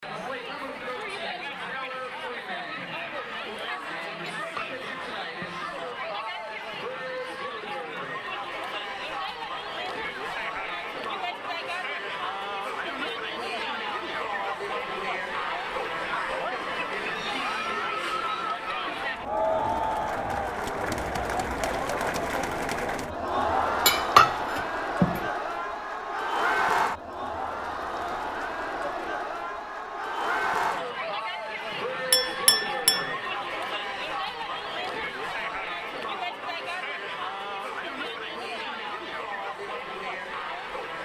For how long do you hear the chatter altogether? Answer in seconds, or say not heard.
41 s.